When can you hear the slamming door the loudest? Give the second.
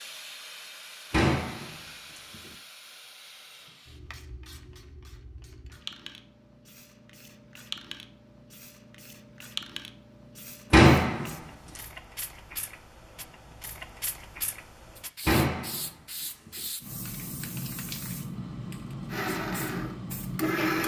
11 s.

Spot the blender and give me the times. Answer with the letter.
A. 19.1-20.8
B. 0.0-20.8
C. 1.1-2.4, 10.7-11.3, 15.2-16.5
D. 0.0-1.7
A.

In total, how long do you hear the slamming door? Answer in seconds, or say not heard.
3 s.